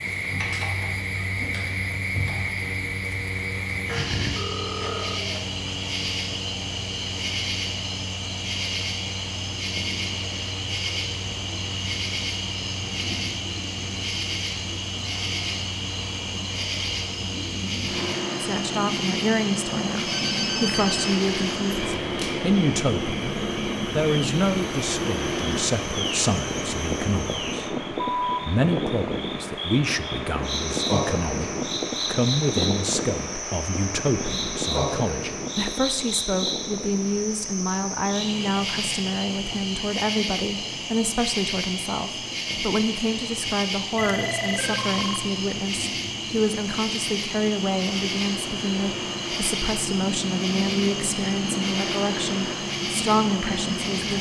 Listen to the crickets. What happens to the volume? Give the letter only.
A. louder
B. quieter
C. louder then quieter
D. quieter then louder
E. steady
E.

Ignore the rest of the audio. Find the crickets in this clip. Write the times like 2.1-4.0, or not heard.
0.0-54.1.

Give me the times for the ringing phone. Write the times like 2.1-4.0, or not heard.
3.9-5.5, 19.9-21.2, 44.0-45.3.